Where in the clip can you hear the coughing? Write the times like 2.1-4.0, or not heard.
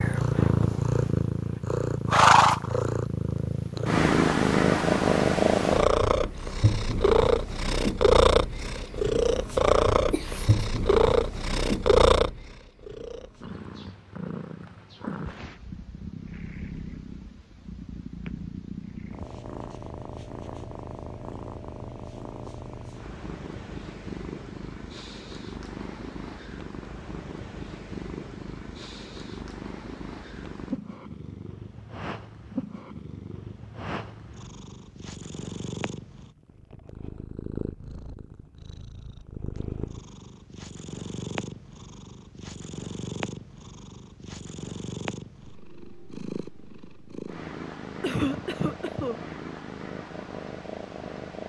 10.1-10.5, 48.0-49.2.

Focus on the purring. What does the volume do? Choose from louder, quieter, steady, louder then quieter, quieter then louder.
quieter.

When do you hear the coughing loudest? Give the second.
48 s.